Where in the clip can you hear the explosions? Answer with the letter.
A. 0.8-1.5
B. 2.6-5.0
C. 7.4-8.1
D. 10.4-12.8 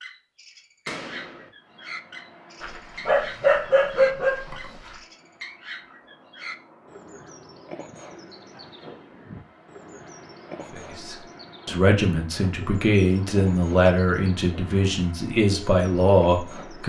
A.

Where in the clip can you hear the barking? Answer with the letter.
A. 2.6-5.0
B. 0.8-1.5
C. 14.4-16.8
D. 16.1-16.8
A.